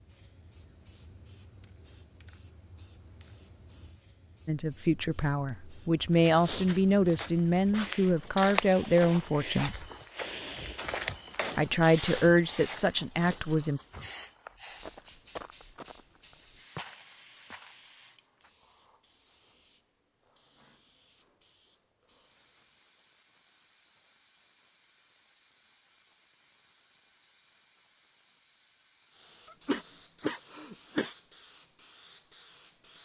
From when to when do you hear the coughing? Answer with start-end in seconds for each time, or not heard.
29.5-31.1.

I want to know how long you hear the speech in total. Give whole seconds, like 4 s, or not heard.
8 s.